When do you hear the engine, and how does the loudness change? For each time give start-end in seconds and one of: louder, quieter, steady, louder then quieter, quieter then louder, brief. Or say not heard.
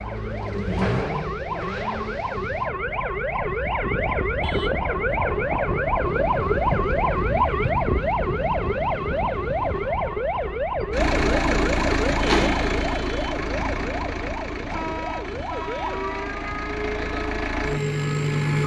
0.0-2.8 brief
10.9-18.6 quieter then louder.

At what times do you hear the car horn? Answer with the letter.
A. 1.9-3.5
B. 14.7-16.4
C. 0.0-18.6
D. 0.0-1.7
B.